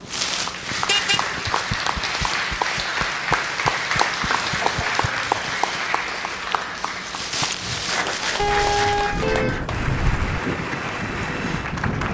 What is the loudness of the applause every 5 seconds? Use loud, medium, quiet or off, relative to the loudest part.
loud, loud, medium.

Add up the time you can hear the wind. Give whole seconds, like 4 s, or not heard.
12 s.